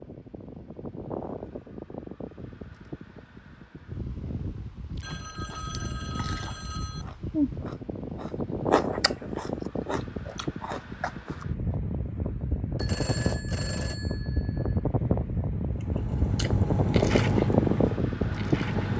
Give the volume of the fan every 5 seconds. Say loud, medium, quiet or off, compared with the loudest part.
quiet, medium, medium, loud.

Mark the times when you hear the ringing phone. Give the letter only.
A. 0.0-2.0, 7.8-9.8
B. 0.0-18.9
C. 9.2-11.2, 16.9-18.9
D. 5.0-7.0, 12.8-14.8
D.